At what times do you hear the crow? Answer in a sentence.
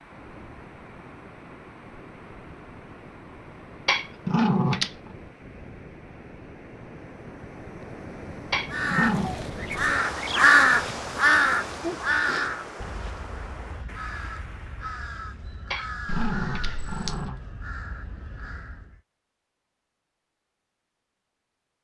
You can hear the crow from 8.7 to 19.0 s.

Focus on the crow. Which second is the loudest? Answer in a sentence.
The loudest moment of the crow is at 11 seconds.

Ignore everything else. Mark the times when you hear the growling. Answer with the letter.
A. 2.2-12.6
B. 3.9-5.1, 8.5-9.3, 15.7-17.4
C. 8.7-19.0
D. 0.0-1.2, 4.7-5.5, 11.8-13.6
B.